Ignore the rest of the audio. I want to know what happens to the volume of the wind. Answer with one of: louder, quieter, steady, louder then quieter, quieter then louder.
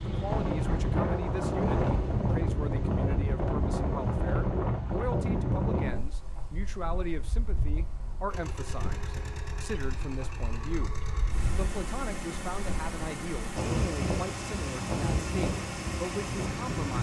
quieter then louder.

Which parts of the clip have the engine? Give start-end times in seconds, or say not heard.
8.2-16.9.